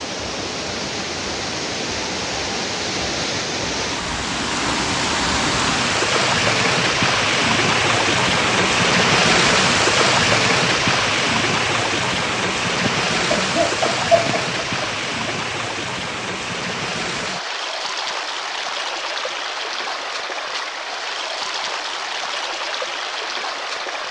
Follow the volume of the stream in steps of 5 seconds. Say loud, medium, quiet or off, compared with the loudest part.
medium, loud, loud, medium, medium.